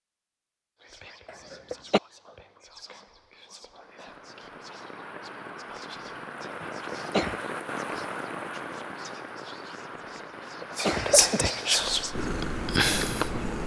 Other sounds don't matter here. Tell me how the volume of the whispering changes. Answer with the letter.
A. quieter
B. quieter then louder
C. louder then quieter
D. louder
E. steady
D.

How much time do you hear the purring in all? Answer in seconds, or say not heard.
2 s.